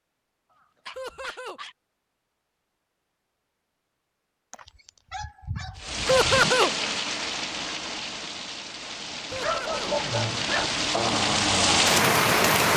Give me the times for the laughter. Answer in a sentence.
You can hear the laughter from 0.9 to 1.6 s, from 6.0 to 6.7 s and from 9.3 to 9.9 s.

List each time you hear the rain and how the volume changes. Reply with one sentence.
You can hear the rain from 5.8 to 12.7 s, getting quieter then louder.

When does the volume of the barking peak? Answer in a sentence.
The loudest moment of the barking is at 10 seconds.